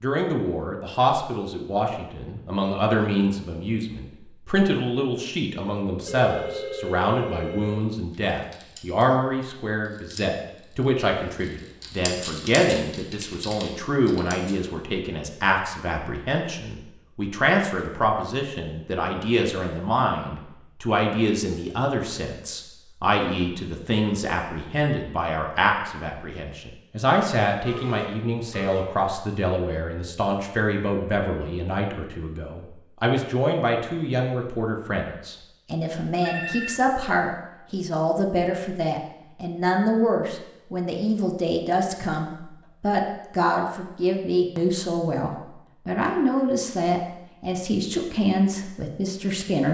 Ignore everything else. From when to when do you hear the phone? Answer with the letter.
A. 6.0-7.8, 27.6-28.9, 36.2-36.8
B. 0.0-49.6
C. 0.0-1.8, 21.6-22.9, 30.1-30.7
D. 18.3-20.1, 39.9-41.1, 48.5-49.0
A.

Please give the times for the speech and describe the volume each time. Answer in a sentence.
The speech can be heard from 0.0 to 49.6 s, at a steady volume.